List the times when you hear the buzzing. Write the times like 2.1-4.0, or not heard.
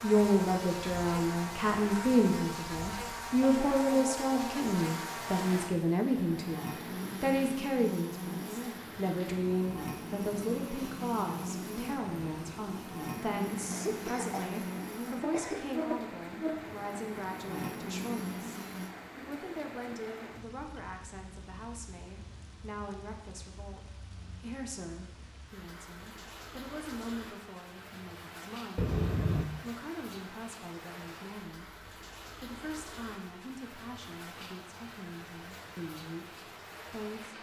0.0-18.9.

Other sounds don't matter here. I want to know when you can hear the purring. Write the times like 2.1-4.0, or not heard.
not heard.